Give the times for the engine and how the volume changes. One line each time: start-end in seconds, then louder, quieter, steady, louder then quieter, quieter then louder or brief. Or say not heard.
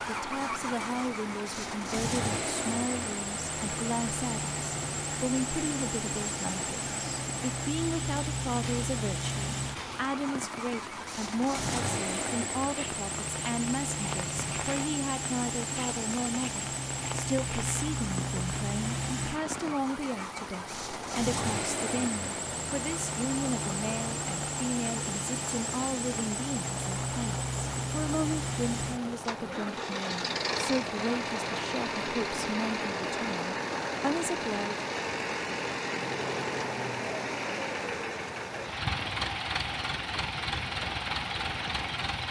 0.0-42.2 steady.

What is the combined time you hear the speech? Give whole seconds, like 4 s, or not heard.
35 s.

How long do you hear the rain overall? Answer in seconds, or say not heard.
42 s.